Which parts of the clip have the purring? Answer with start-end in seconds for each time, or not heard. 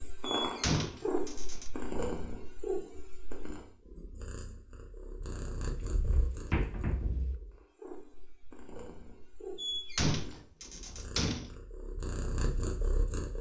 0.0-13.3.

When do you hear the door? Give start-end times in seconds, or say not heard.
0.2-1.7, 5.8-7.4, 9.6-11.6.